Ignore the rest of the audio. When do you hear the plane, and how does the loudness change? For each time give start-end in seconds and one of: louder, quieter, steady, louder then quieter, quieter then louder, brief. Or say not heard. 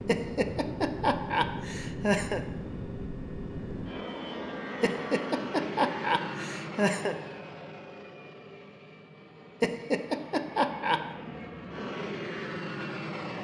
0.0-13.3 quieter then louder.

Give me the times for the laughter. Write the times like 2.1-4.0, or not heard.
0.1-2.4, 4.8-7.2, 9.6-11.0.